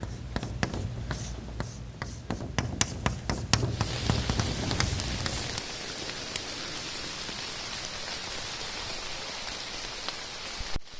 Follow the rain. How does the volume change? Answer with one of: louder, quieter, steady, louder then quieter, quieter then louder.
steady.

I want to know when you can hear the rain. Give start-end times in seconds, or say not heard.
3.6-10.9.